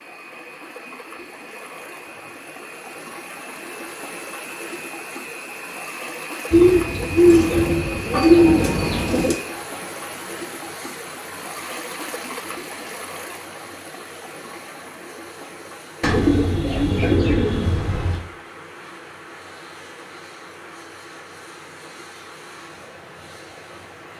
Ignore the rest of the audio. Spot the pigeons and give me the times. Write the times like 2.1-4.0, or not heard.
6.5-9.4, 16.0-18.2.